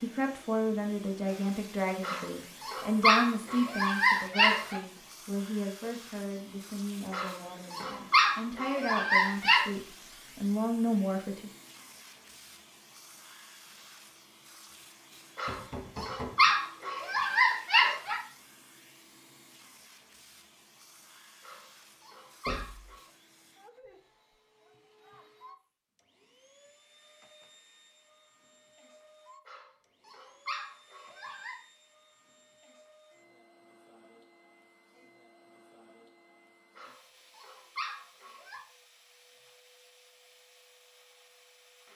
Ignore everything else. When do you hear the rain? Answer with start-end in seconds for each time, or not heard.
not heard.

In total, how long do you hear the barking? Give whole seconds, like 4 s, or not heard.
14 s.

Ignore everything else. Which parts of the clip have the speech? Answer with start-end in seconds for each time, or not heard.
0.0-11.5.